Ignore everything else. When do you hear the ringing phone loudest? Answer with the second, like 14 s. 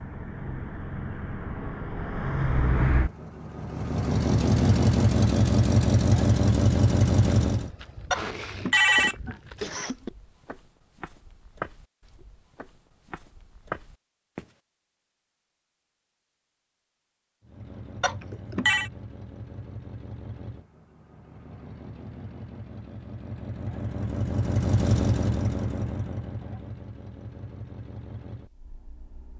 9 s.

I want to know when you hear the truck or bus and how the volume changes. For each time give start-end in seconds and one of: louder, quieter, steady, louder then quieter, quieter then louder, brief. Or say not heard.
0.0-7.7 louder
17.4-29.3 louder then quieter.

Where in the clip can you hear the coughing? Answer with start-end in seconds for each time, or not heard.
8.1-10.1.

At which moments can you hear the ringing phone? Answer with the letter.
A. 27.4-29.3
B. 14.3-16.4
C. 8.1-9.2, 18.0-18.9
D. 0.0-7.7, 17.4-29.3
C.